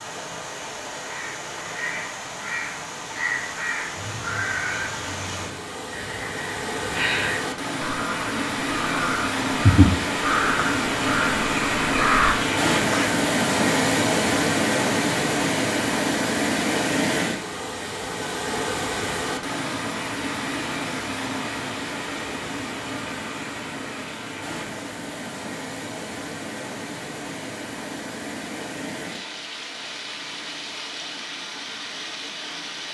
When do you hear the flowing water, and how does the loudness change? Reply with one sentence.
The flowing water can be heard from 0.0 to 32.8 s, getting louder then quieter.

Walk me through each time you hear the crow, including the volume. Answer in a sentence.
The crow can be heard from 1.0 to 13.2 s, getting louder.